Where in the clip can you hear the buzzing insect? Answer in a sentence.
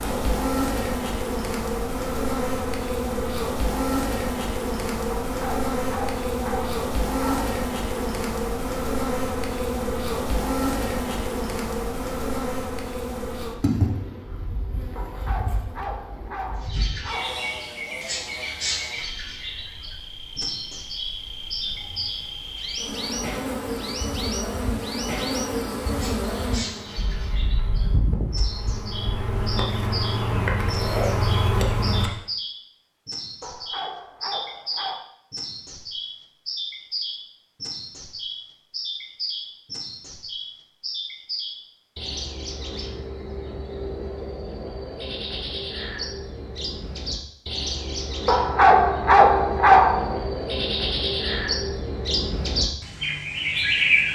You can hear the buzzing insect from 0.0 to 32.1 s.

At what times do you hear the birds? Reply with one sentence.
The birds can be heard from 16.6 to 54.1 s.